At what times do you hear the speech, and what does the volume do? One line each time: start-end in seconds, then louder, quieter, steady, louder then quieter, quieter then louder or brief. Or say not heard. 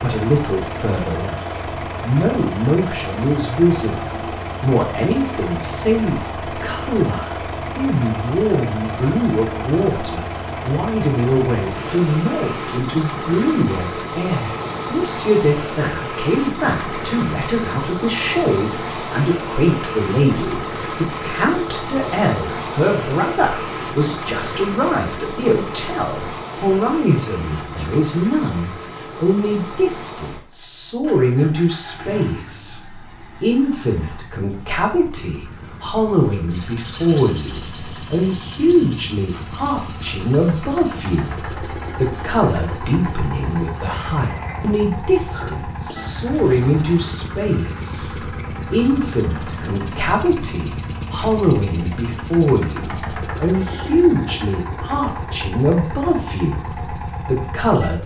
0.0-58.0 steady.